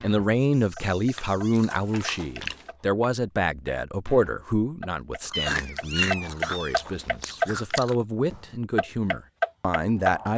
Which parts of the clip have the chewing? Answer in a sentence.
The chewing can be heard from 1.1 to 2.8 s and from 5.2 to 8.1 s.